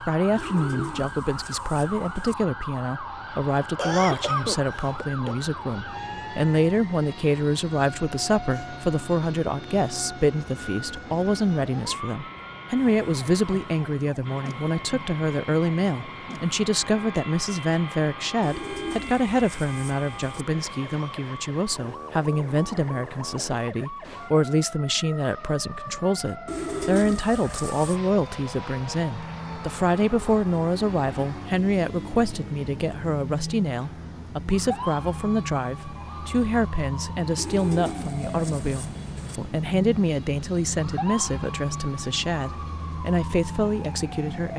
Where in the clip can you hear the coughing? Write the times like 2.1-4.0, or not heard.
3.8-5.3.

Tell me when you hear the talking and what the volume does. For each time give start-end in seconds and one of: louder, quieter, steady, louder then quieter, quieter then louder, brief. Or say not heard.
0.1-44.5 steady.